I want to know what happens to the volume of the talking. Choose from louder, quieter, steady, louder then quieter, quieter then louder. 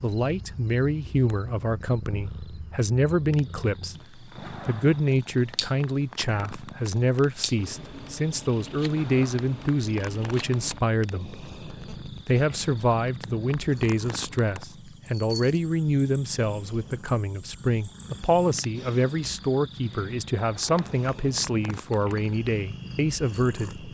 steady.